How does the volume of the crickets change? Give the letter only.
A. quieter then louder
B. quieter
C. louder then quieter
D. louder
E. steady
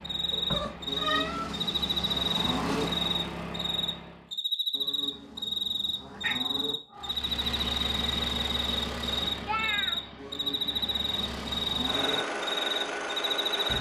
E.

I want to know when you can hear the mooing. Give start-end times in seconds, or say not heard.
0.8-2.9, 4.7-6.8, 10.2-12.2.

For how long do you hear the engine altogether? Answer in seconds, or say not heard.
11 s.